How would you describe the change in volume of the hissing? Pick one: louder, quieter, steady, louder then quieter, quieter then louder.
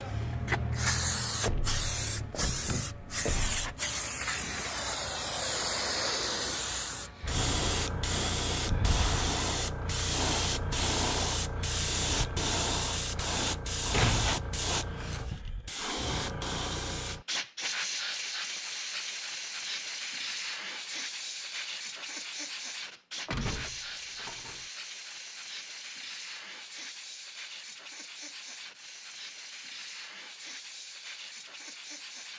quieter.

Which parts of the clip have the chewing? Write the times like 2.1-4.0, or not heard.
not heard.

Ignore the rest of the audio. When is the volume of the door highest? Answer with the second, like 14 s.
14 s.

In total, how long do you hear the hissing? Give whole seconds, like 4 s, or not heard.
32 s.